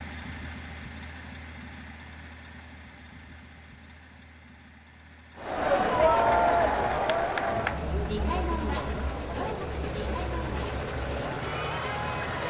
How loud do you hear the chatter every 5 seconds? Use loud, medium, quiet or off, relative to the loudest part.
off, loud, medium.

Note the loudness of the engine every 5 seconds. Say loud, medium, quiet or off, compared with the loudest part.
medium, medium, loud.